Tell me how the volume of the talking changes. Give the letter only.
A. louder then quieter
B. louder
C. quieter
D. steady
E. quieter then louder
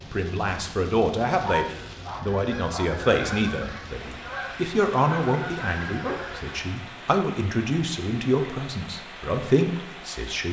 D.